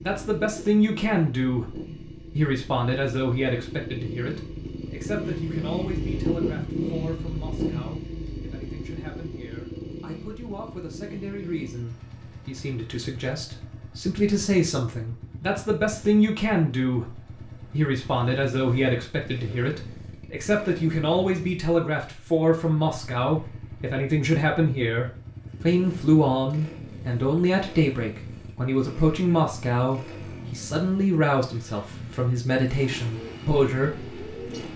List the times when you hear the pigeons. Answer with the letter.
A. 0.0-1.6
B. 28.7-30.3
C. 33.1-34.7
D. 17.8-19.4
C.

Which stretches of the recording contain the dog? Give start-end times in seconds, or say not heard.
not heard.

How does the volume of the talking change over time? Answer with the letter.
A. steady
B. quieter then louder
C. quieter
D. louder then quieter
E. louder
B.